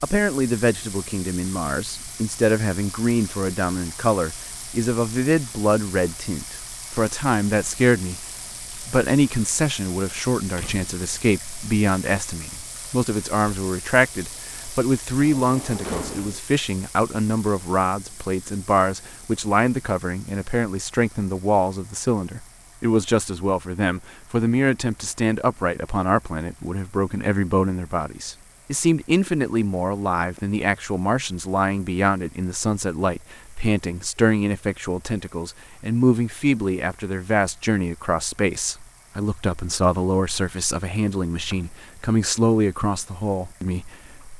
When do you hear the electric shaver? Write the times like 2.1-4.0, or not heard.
not heard.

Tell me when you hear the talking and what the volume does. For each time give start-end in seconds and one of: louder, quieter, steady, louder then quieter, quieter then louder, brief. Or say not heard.
0.0-44.3 steady.